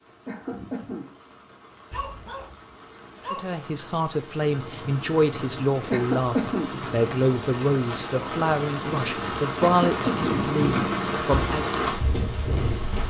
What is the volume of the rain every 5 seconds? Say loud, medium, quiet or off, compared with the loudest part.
quiet, medium, loud.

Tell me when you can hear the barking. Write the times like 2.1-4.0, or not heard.
1.9-3.5.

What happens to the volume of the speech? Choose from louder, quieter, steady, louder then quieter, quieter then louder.
steady.